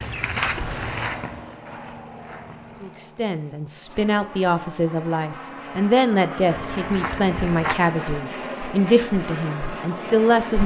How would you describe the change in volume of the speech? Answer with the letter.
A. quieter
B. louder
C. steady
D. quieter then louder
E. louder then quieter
C.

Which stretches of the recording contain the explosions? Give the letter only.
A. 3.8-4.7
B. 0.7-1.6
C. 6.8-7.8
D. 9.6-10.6
B.